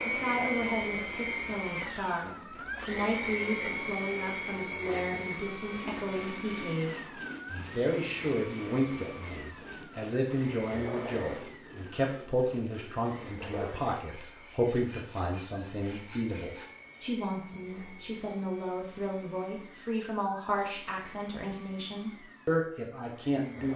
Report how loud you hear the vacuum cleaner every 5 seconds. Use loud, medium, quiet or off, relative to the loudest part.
loud, medium, medium, quiet, quiet.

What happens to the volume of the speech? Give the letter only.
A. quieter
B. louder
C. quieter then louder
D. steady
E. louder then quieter
D.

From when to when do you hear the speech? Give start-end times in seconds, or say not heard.
0.1-23.7.